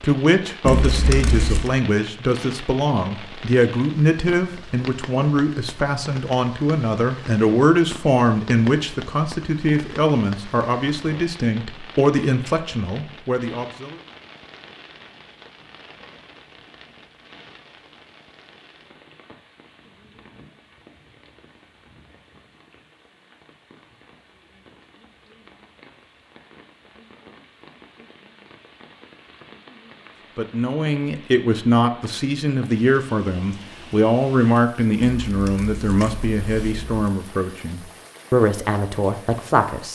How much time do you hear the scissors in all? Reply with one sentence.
The scissors can be heard for 3 seconds in total.